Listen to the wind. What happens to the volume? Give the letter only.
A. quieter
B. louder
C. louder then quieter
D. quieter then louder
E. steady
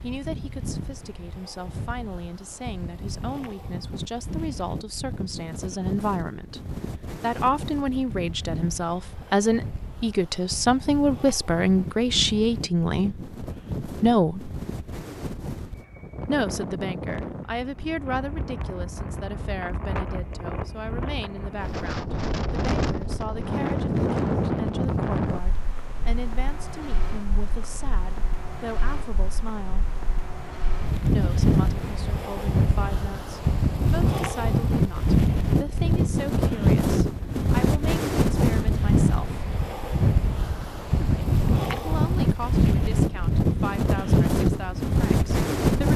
B.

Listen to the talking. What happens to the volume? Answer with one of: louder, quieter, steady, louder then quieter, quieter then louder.
louder then quieter.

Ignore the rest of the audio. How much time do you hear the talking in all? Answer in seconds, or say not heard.
41 s.